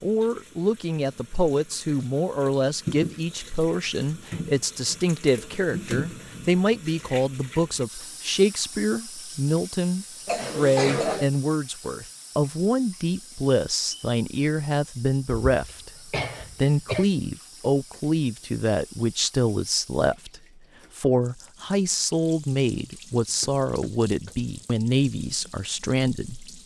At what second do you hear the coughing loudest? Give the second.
11 s.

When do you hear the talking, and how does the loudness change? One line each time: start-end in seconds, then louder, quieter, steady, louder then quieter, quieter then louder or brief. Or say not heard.
0.0-26.6 steady.